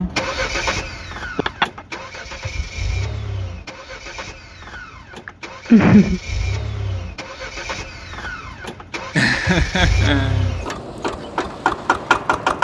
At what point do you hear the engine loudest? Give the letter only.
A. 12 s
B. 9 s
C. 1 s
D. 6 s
A.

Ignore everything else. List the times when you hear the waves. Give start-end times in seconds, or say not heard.
not heard.